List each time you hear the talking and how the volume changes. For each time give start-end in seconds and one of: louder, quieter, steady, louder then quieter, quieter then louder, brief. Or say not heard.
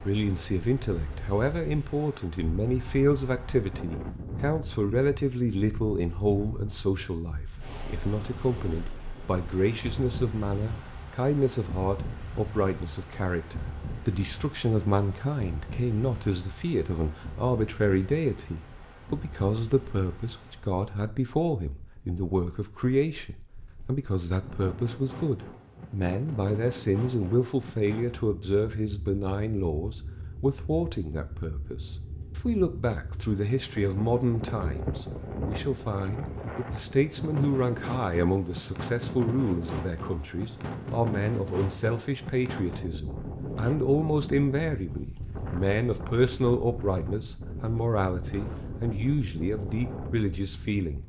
0.0-51.0 steady.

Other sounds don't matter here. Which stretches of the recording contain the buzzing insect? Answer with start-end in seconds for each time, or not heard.
not heard.